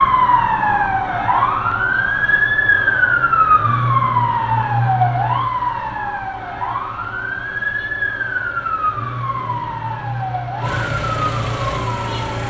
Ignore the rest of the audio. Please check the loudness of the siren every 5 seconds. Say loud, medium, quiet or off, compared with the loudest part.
loud, medium, medium.